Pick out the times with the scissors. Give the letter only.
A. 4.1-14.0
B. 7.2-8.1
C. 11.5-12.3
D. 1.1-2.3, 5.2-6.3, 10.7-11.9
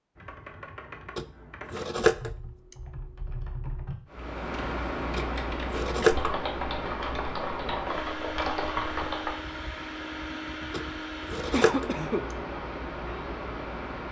D.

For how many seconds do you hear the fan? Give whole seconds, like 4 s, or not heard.
10 s.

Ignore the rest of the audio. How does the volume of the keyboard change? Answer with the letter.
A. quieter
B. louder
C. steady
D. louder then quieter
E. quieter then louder
B.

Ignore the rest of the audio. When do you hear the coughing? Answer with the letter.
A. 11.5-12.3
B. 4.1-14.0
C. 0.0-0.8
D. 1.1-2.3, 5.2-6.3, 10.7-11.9
A.